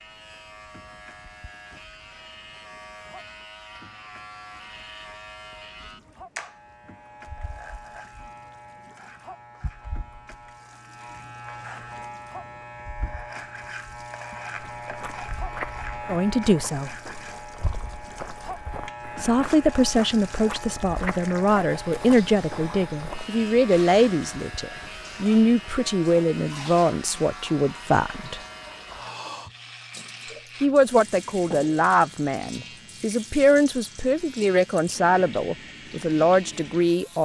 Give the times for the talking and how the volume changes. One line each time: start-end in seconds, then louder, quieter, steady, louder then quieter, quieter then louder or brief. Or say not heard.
16.1-16.9 brief
19.1-28.4 steady
30.6-37.2 quieter then louder.